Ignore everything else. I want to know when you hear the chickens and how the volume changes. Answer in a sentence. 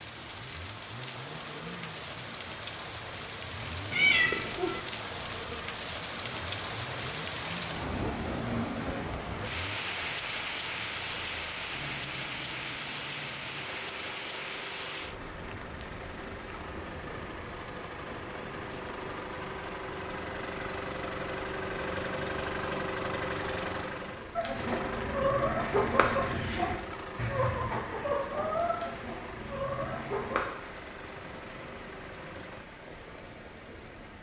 You can hear the chickens from 24.4 to 30.4 s, getting quieter.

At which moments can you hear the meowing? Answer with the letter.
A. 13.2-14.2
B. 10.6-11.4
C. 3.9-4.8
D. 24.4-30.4
C.